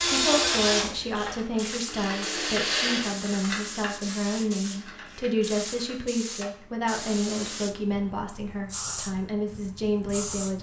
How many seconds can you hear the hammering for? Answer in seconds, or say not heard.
not heard.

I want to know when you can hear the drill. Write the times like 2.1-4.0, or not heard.
0.0-3.1.